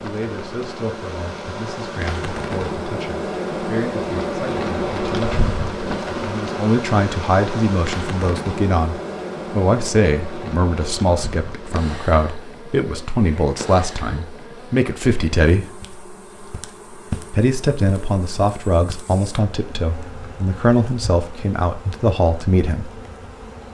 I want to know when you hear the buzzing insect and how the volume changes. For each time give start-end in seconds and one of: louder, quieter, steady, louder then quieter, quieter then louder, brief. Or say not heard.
0.0-23.6 quieter.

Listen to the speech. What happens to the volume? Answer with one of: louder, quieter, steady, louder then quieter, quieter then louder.
louder.